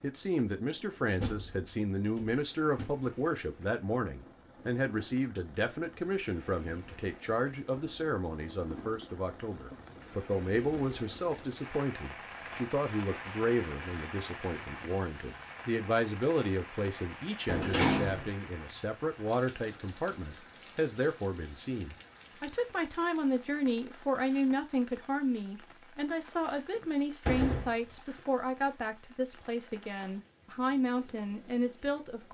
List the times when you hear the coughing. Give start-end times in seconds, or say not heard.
not heard.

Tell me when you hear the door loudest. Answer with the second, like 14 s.
18 s.